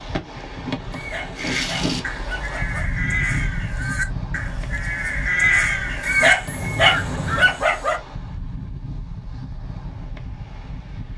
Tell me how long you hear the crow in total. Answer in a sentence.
You can hear the crow for 6 seconds altogether.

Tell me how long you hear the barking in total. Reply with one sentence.
You can hear the barking for 4 seconds altogether.